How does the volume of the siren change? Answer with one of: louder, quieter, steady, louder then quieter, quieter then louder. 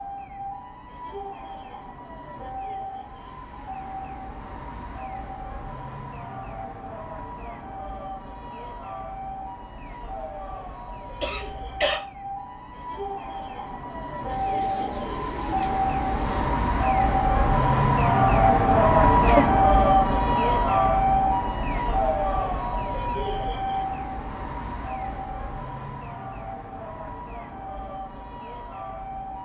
louder then quieter.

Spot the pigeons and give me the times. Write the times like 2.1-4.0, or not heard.
14.2-16.6.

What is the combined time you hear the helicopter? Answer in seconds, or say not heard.
not heard.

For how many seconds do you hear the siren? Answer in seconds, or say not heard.
29 s.